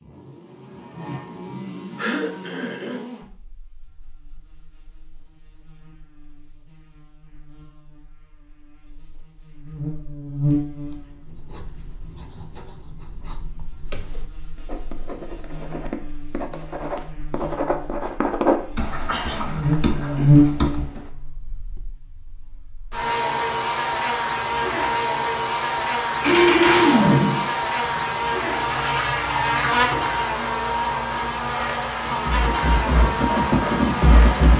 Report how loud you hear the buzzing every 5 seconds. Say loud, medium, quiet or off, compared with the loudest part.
quiet, quiet, medium, medium, loud, loud, loud.